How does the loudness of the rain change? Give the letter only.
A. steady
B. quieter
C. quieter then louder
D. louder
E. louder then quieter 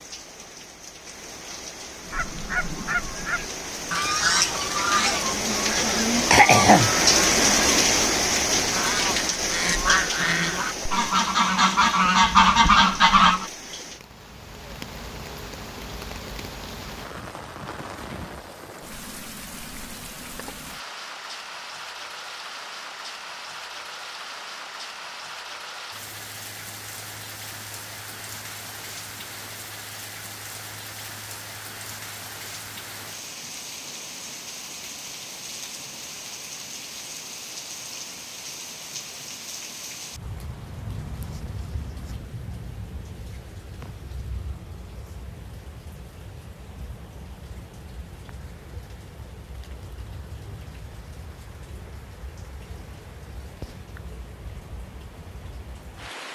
B.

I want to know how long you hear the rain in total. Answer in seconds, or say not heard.
56 s.